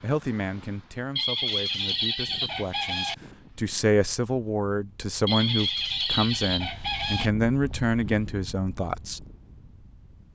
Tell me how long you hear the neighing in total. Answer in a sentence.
You can hear the neighing for 4 seconds altogether.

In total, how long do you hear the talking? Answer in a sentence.
You can hear the talking for 9 seconds altogether.